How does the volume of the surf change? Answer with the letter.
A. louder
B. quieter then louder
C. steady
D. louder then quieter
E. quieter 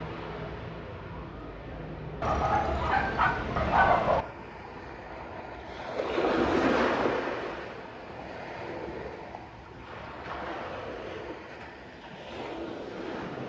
D.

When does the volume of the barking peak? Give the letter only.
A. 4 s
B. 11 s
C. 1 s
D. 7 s
A.